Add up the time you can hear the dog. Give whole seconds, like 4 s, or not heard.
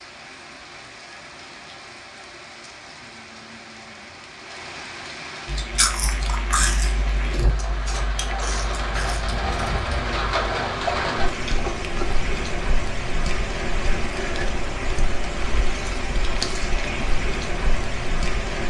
not heard.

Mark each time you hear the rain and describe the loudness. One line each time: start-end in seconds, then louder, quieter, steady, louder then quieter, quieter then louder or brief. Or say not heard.
0.0-18.6 louder.